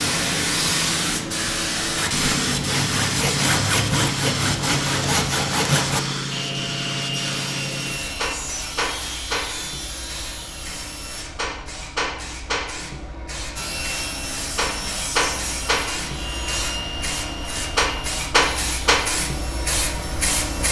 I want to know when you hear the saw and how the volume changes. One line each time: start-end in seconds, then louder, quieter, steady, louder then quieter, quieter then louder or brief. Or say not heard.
1.9-11.2 quieter
13.6-20.6 quieter.